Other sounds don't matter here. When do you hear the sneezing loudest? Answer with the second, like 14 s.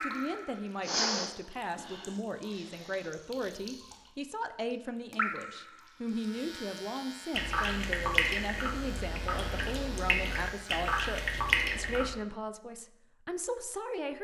1 s.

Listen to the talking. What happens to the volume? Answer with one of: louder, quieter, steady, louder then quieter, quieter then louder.
steady.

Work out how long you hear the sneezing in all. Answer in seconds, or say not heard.
2 s.